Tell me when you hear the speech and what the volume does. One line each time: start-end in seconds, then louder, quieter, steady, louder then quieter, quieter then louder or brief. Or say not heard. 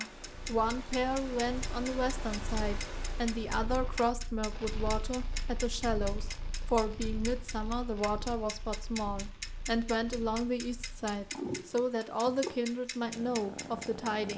0.0-14.3 steady.